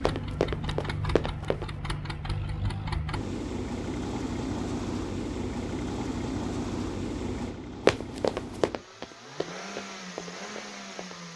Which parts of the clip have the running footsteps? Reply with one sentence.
You can hear the running footsteps from 0.1 to 1.6 s and from 7.8 to 11.3 s.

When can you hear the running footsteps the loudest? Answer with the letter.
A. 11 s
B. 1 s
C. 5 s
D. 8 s
D.